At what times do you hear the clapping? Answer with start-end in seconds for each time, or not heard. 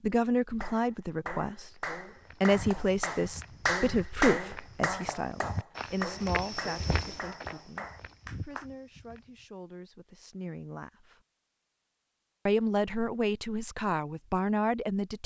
0.6-8.7.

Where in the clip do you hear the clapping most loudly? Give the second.
4 s.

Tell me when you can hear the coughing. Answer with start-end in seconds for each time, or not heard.
not heard.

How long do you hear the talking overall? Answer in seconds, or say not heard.
13 s.